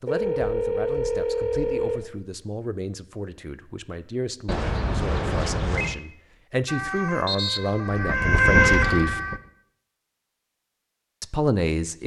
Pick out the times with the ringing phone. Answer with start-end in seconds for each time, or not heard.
0.1-2.0, 4.5-6.0, 8.5-9.1.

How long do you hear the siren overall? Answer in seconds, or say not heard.
3 s.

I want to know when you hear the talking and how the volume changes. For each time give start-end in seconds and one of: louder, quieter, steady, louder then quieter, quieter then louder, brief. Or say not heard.
0.0-9.2 louder
11.2-12.0 brief.